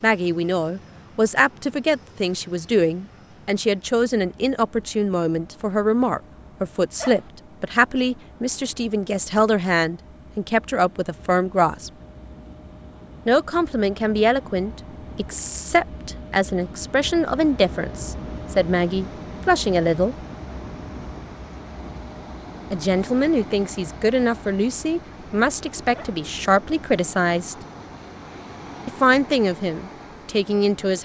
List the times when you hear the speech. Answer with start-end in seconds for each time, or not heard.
0.0-11.9, 13.2-20.1, 22.7-27.6, 28.9-31.0.